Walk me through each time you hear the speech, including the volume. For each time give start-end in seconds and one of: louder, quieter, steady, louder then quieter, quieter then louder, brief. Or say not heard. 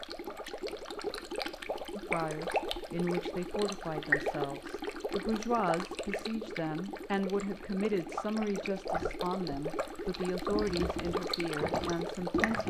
1.9-12.6 steady.